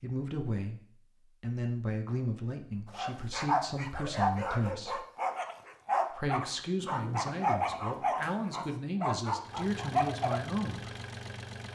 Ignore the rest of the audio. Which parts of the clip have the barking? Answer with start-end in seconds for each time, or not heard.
2.9-10.4.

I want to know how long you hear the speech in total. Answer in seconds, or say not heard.
9 s.